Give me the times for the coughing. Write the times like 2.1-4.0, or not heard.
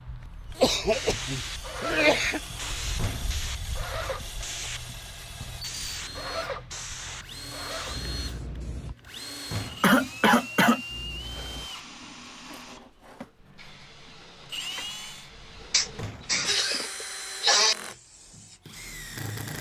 0.6-2.4, 9.8-10.8, 15.7-17.8.